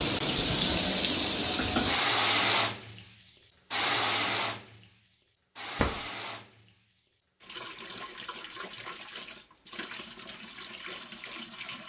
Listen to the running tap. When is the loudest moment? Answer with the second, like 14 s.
2 s.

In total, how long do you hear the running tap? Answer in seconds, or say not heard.
12 s.